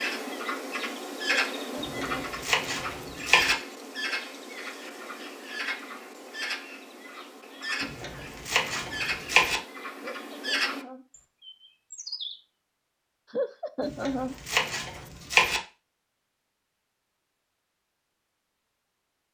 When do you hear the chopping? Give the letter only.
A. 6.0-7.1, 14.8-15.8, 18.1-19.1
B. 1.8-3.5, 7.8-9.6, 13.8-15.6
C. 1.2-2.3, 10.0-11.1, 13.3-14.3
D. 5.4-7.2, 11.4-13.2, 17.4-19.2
B.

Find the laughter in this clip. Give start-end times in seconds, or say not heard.
1.2-2.3, 10.0-11.1, 13.3-14.3.